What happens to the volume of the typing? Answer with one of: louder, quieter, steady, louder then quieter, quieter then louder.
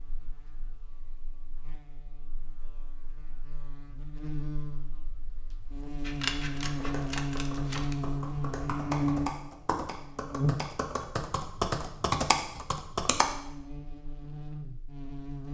louder.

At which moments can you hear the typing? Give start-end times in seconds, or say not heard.
6.8-13.3.